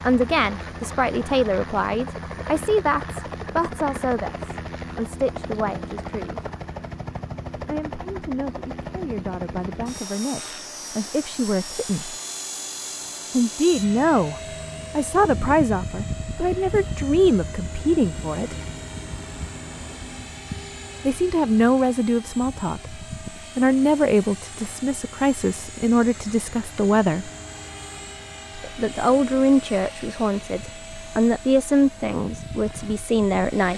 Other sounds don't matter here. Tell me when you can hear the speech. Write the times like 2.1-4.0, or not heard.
0.0-6.5, 7.6-12.2, 13.3-18.6, 21.1-27.3, 28.6-33.7.